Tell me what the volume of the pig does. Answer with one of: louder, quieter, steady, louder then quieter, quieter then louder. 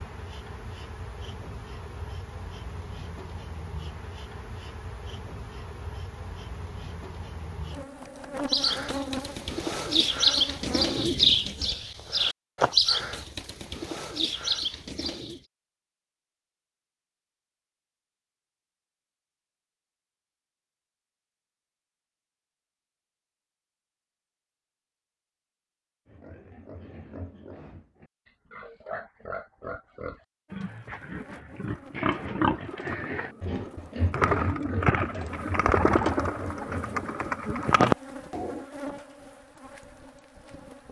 louder then quieter.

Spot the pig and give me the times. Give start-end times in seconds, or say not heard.
26.1-37.1.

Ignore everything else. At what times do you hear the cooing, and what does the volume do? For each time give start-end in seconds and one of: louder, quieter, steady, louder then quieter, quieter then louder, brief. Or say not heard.
8.3-15.4 louder then quieter
31.7-38.6 louder.